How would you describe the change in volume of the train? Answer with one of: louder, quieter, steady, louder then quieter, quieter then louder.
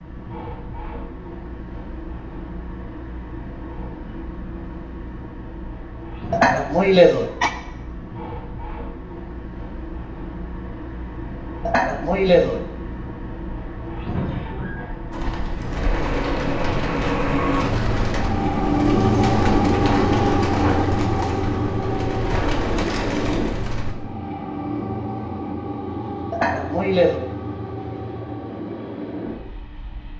louder then quieter.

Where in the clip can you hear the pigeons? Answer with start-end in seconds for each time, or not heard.
15.1-23.9.